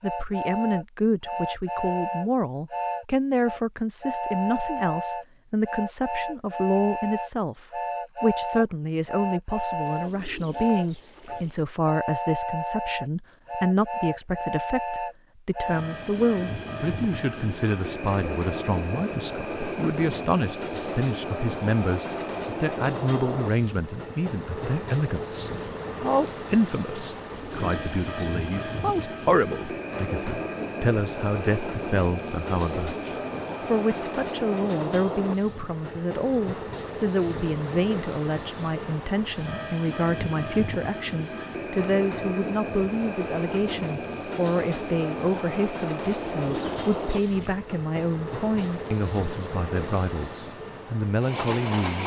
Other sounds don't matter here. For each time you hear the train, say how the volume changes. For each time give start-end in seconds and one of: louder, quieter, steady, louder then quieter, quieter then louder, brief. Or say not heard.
0.0-52.0 steady.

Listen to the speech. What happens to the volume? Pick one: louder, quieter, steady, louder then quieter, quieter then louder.
steady.